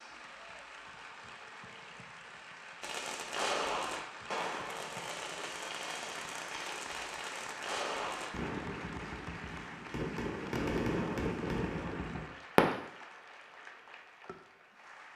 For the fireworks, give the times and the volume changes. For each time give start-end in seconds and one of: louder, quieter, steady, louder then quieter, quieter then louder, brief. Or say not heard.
2.8-12.7 quieter then louder.